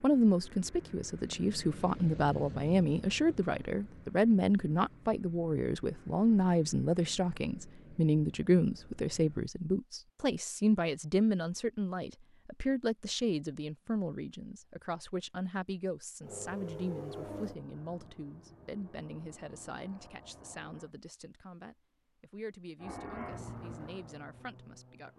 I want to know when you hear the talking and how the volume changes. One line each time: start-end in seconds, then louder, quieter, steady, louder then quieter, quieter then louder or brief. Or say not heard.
0.0-25.1 quieter.